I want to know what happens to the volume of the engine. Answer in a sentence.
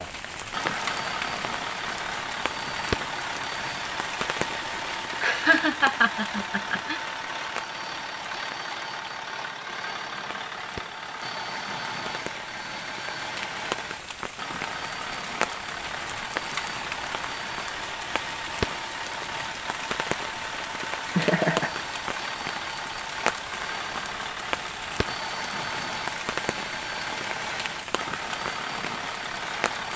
The loudness of the engine stays about the same.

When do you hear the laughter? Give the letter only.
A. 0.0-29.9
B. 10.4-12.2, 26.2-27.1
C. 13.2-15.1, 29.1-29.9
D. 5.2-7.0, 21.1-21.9
D.